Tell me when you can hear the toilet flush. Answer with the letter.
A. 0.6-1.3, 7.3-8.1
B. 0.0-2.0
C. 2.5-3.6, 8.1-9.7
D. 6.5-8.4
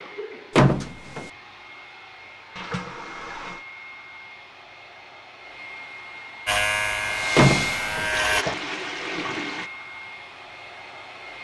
C.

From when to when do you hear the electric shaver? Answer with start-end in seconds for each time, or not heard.
6.5-8.4.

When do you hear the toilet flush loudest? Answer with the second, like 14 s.
9 s.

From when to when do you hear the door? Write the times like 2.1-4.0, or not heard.
0.6-1.3, 7.3-8.1.